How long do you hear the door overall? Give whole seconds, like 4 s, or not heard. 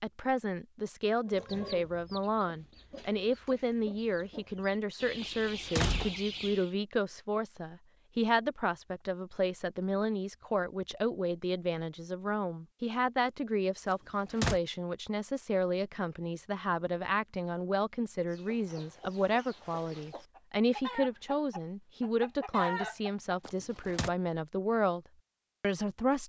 2 s.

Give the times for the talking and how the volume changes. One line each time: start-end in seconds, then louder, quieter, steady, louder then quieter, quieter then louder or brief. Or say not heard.
0.0-25.0 steady
25.6-26.2 brief.